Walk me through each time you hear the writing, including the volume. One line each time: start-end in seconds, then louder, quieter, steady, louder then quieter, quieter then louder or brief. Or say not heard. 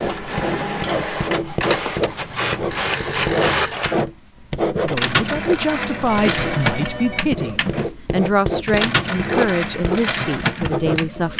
0.0-11.3 steady.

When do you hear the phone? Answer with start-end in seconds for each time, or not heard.
1.6-3.8, 5.8-7.2.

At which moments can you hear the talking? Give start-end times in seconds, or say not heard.
4.8-11.3.